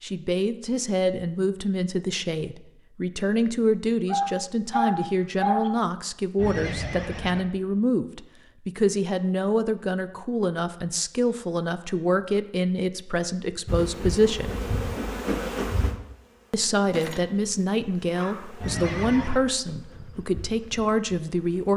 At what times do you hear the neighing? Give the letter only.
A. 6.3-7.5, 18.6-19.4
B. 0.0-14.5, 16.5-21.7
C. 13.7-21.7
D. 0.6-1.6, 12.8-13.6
A.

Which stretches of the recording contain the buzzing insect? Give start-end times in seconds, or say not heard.
13.7-21.7.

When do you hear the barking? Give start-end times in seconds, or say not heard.
4.1-5.7, 18.1-19.2.